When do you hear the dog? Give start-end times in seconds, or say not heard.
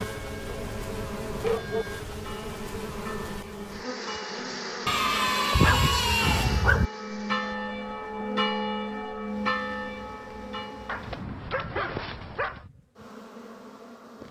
0.7-1.9, 4.8-6.9, 10.8-12.7.